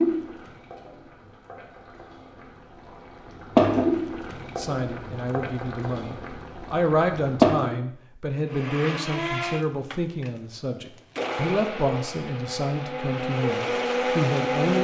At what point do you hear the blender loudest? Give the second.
14 s.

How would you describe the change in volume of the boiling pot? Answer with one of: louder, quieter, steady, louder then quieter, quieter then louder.
louder then quieter.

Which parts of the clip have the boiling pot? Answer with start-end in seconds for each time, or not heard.
0.0-7.8.